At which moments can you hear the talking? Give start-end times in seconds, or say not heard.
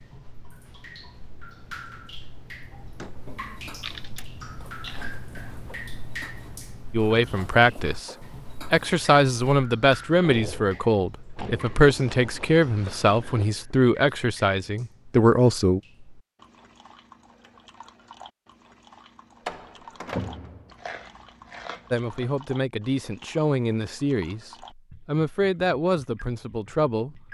6.9-15.8, 21.9-27.2.